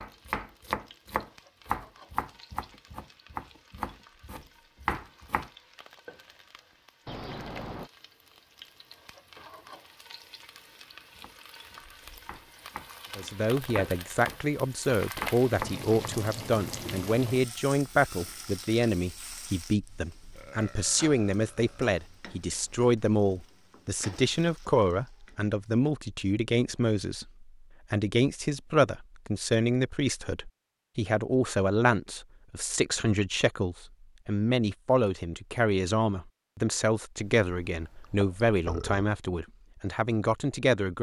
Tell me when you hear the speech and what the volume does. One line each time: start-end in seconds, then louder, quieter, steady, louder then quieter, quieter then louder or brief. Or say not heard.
13.2-40.9 steady.